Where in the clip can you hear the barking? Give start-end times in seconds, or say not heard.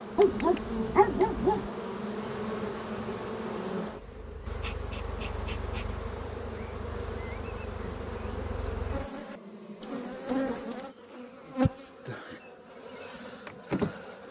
0.1-1.7.